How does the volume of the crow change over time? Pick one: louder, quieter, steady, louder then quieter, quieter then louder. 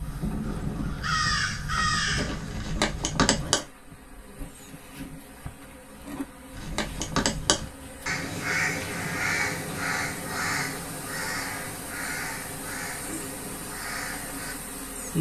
quieter.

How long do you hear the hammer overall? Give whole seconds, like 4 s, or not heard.
not heard.